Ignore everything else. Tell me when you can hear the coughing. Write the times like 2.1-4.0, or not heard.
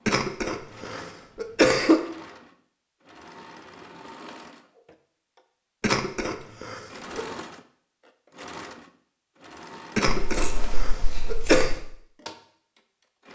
0.1-2.0, 5.8-7.2, 9.9-11.8.